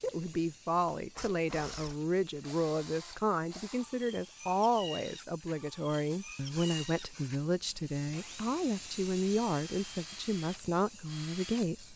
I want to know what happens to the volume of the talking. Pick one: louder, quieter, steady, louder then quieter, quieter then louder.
steady.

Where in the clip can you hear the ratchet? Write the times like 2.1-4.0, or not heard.
not heard.